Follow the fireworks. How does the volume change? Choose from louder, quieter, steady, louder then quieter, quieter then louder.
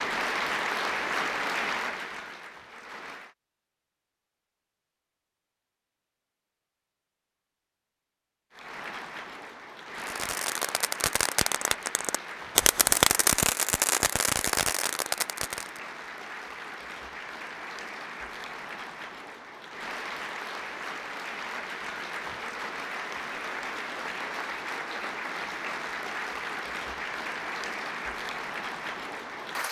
louder then quieter.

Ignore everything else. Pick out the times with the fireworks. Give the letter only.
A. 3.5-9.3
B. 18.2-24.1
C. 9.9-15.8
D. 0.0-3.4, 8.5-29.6
C.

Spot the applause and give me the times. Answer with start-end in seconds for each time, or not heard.
0.0-3.4, 8.5-29.6.